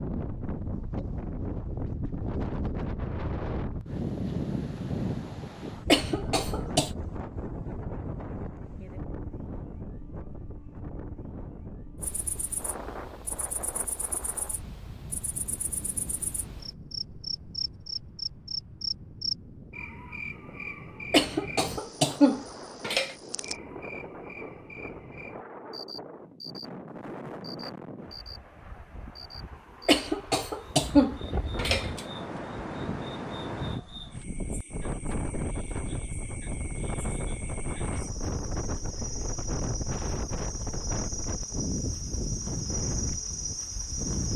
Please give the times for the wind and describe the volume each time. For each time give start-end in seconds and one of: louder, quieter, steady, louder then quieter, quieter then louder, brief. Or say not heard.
0.0-44.3 quieter then louder.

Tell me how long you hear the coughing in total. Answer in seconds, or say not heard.
5 s.